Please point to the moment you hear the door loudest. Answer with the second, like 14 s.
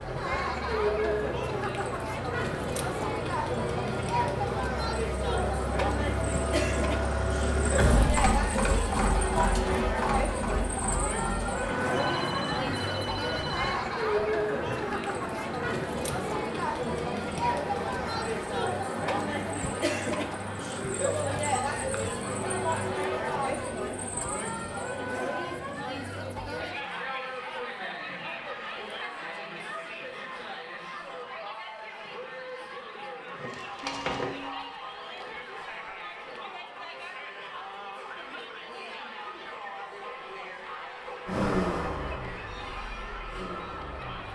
8 s.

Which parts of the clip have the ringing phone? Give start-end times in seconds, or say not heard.
11.9-13.8, 33.8-34.8.